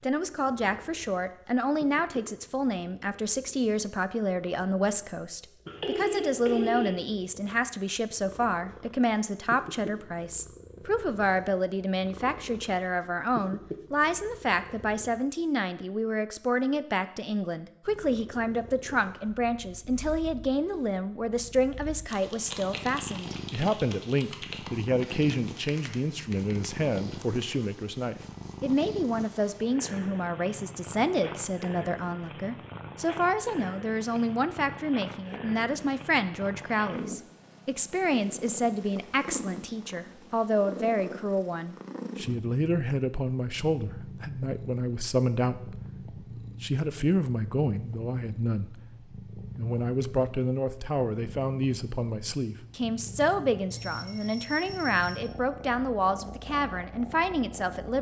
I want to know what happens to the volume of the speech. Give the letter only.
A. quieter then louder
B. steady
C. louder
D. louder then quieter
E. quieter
B.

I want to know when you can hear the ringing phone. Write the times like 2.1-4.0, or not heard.
5.7-6.9, 53.7-55.2.